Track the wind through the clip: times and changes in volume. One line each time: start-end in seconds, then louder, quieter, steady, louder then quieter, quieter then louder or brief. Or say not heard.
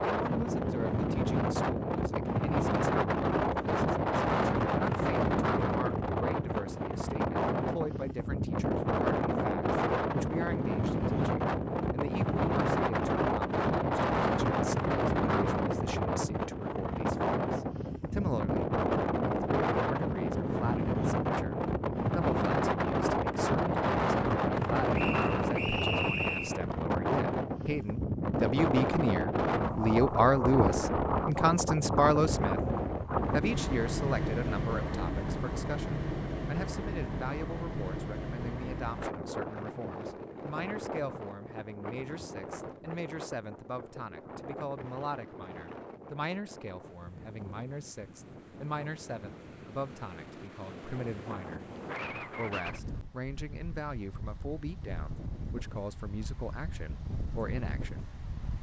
0.0-58.5 quieter.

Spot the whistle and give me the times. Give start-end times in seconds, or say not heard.
24.9-26.6.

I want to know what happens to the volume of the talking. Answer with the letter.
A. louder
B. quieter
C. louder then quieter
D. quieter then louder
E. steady
C.